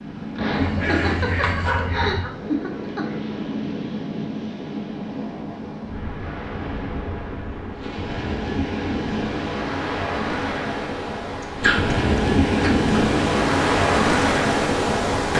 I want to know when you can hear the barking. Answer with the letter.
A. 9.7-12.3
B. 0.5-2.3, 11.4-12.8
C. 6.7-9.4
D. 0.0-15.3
B.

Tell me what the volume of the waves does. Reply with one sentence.
The loudness of the waves goes up.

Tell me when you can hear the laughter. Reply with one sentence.
You can hear the laughter from 0.3 to 3.0 s.